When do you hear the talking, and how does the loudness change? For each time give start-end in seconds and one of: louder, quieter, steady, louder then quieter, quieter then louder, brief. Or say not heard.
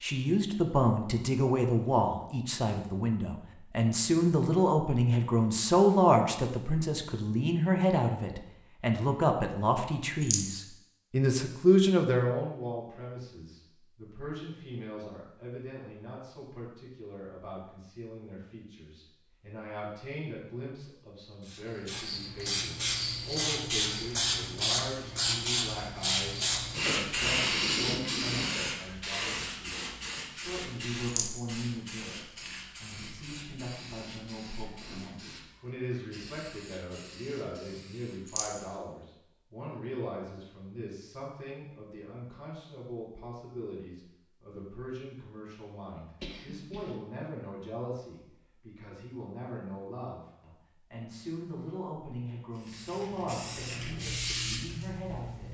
0.0-55.4 quieter.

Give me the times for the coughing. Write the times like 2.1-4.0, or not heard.
46.2-47.0.